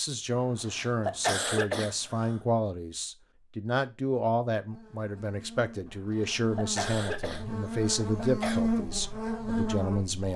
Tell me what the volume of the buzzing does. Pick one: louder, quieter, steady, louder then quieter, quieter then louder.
louder.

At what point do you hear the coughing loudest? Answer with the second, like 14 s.
1 s.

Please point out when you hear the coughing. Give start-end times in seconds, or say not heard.
0.3-2.4, 5.8-8.6.